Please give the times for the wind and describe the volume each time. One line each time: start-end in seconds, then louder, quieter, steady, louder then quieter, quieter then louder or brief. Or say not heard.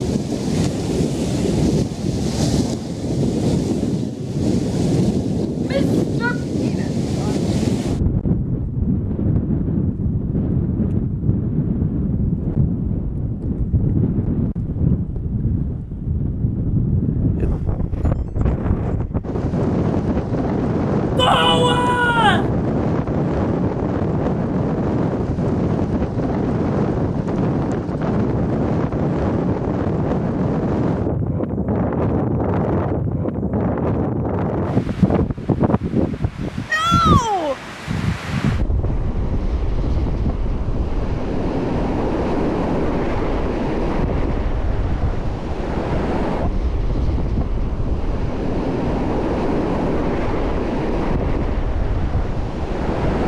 0.0-53.2 steady.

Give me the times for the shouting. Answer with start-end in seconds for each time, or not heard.
5.7-7.3, 21.1-22.5, 36.7-37.5.